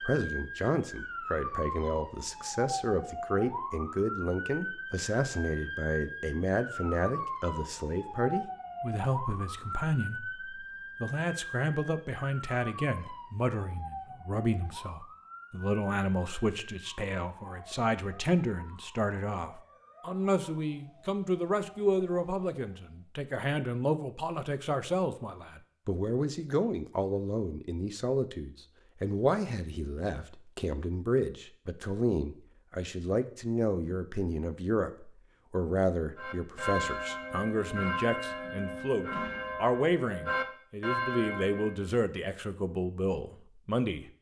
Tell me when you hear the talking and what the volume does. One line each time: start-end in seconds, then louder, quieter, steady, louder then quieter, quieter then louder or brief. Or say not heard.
0.0-44.1 steady.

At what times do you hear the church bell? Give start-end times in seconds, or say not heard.
36.1-41.9.